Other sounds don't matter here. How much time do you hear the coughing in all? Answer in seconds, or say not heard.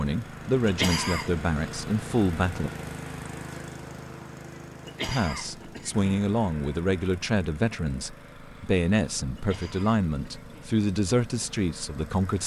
3 s.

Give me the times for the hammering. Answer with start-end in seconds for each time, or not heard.
not heard.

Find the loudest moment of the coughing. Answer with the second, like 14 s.
1 s.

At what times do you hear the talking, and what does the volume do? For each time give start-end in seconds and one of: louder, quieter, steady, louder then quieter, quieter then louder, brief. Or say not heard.
0.0-2.7 brief
5.0-12.4 steady.